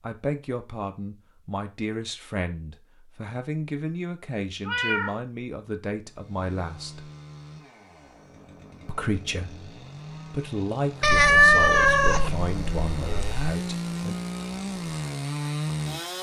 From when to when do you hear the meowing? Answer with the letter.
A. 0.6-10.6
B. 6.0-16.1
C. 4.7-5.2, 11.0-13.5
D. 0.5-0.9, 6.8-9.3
C.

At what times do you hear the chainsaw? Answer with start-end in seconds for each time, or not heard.
6.0-16.1.